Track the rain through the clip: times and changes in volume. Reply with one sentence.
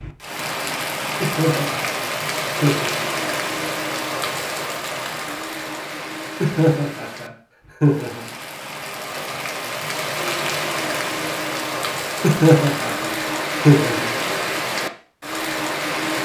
The rain can be heard from 0.0 to 16.1 s, getting quieter then louder.